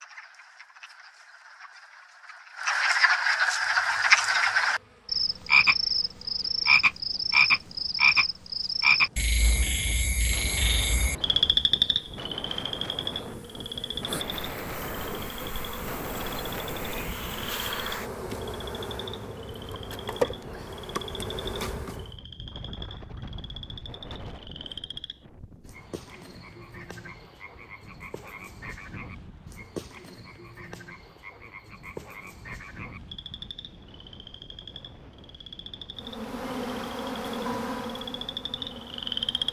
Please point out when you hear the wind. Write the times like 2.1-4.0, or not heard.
9.3-39.4.